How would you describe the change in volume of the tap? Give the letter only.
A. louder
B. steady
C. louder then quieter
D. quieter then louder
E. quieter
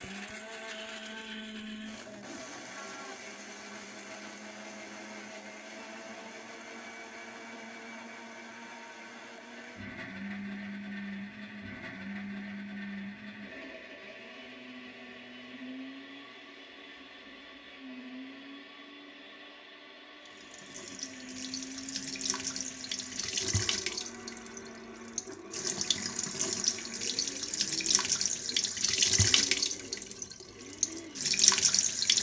A.